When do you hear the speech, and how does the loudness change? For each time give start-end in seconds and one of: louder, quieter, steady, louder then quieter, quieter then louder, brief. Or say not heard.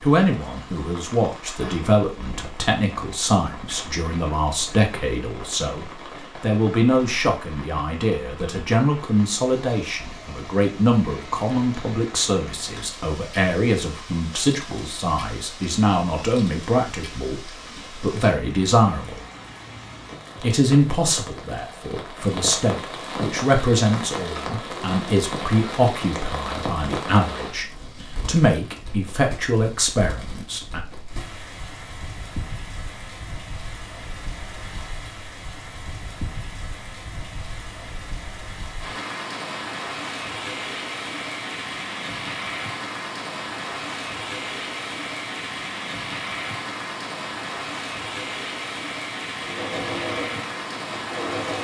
0.0-19.2 steady
20.4-30.8 steady.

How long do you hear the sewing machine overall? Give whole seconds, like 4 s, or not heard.
2 s.